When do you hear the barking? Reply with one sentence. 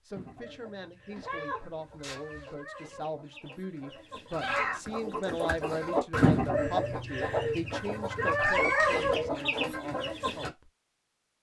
The barking can't be heard in this clip.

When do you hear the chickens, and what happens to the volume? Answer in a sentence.
You can hear the chickens from 0.1 to 10.5 s, getting louder.